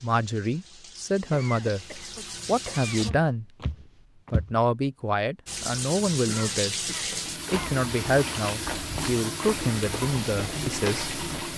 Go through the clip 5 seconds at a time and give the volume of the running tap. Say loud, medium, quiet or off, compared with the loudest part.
medium, loud, loud.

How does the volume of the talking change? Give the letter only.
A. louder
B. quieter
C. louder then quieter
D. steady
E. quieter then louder
D.